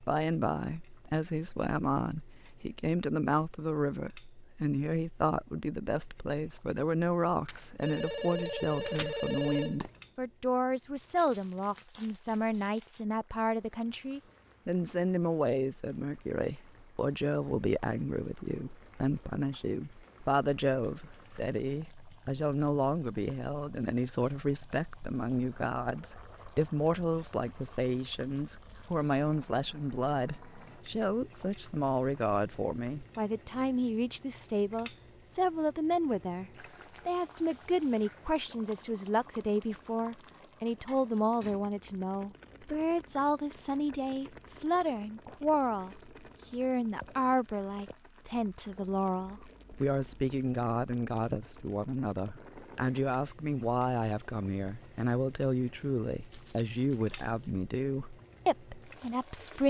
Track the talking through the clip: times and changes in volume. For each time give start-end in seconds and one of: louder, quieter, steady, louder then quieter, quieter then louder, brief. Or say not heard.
0.0-59.6 steady.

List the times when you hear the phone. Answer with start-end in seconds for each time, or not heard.
7.5-10.1.